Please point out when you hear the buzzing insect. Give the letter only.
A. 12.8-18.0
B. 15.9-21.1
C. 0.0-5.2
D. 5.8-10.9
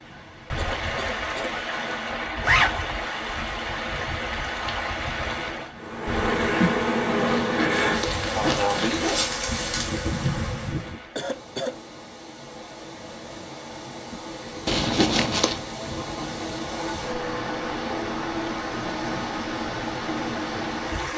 D.